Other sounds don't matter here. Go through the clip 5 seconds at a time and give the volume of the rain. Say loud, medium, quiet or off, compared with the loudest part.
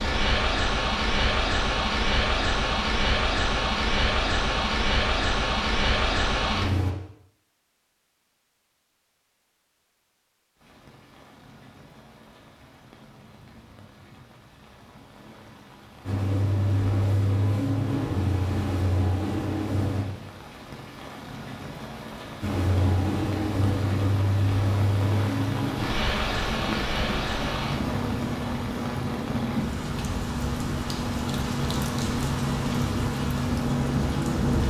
off, off, quiet, quiet, medium, loud, loud.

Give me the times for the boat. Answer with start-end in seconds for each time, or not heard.
0.0-7.0, 16.1-20.1, 22.4-34.6.